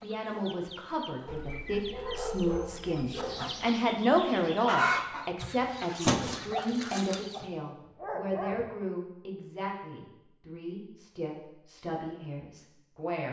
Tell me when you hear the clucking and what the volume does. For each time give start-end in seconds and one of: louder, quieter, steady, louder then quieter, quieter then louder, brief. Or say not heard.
0.0-7.5 louder.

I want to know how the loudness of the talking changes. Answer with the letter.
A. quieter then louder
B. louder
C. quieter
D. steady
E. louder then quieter
E.